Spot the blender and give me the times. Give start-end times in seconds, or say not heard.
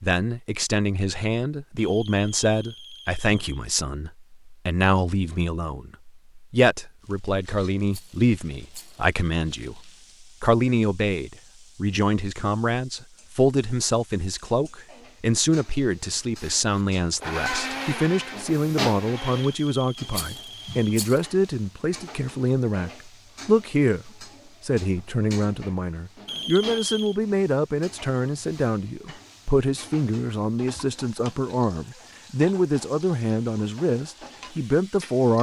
16.4-19.6.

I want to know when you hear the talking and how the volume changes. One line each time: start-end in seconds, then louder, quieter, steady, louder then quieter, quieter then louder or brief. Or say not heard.
0.0-35.3 steady.